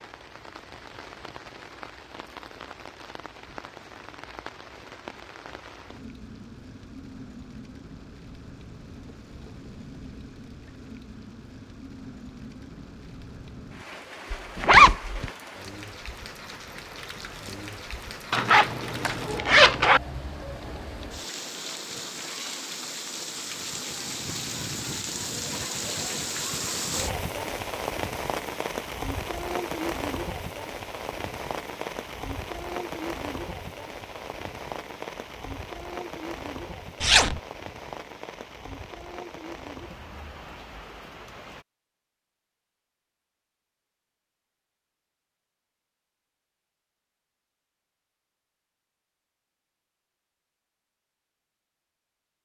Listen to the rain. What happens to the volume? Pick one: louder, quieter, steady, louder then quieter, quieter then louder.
louder then quieter.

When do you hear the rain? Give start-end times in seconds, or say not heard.
0.0-41.6.